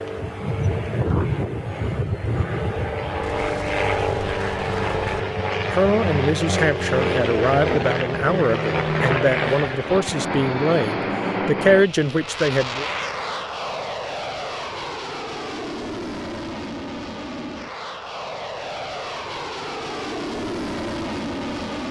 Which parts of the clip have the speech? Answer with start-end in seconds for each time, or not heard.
5.7-12.8.